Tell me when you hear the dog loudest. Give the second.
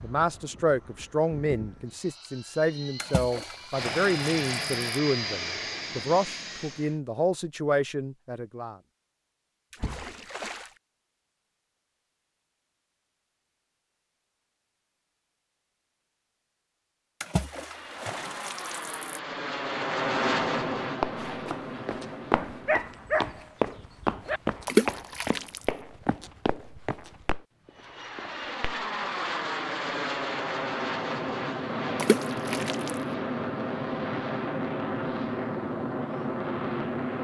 23 s.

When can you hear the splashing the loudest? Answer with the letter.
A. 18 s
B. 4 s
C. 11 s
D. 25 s
D.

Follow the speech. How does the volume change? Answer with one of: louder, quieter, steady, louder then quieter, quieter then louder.
steady.